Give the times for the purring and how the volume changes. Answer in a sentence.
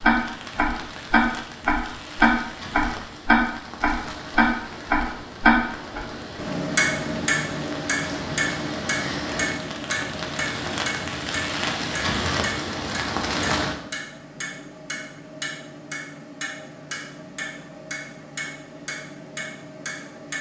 You can't hear the purring here.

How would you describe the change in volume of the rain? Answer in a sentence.
The volume of the rain goes up.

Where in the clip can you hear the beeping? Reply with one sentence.
The beeping can't be heard in this clip.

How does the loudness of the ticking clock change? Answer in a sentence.
The volume of the ticking clock goes down.